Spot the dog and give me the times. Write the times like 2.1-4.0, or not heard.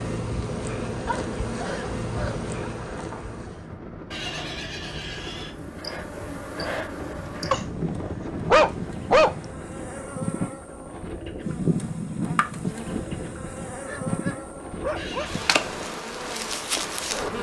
1.1-2.5, 7.5-9.3, 13.8-15.4.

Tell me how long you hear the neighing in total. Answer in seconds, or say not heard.
2 s.